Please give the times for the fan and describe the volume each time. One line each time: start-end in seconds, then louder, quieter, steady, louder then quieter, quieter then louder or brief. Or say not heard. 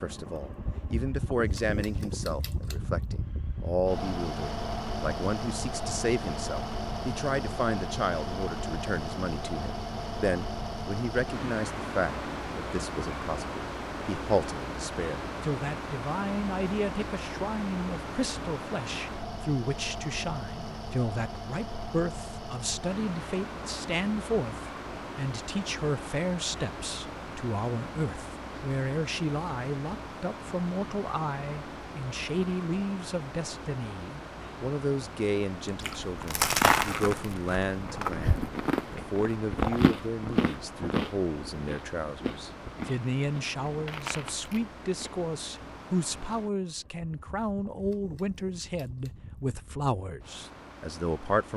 0.0-51.5 quieter.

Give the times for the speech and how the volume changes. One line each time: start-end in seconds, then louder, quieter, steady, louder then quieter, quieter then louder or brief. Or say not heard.
0.0-51.5 steady.